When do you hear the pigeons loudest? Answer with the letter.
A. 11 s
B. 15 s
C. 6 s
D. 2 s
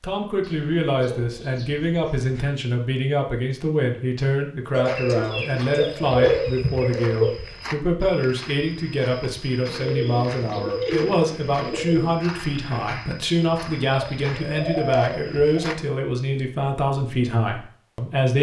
C.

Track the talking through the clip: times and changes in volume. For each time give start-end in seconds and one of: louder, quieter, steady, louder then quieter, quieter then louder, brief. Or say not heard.
0.0-18.3 steady.